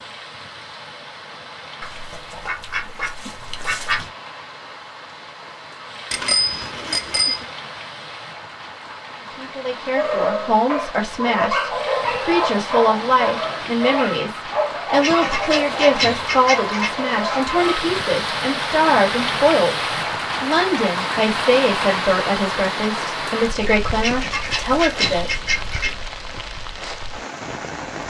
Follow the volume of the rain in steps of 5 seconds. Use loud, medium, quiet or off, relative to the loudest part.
quiet, medium, medium, loud, loud, medium.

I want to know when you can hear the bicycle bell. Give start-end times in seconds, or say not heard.
6.1-7.5.